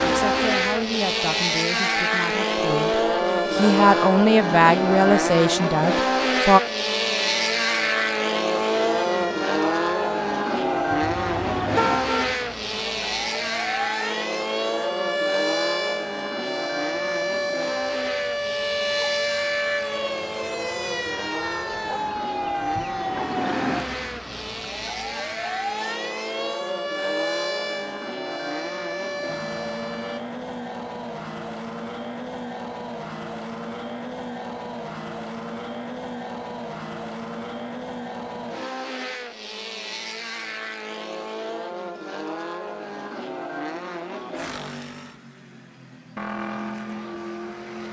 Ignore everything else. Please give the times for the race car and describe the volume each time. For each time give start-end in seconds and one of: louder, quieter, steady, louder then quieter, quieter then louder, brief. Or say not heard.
0.0-47.8 quieter.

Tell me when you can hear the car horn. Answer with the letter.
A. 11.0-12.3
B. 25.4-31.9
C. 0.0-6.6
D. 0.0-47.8
A.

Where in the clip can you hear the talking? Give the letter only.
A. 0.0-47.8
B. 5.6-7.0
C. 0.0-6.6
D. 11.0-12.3
C.